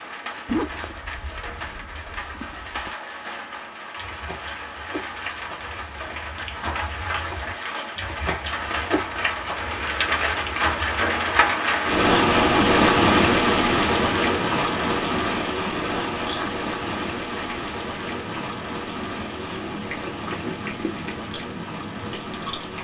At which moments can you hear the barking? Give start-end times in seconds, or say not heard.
not heard.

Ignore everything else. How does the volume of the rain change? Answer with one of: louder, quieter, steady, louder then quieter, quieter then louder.
louder then quieter.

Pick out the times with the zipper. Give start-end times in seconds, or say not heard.
0.5-2.9.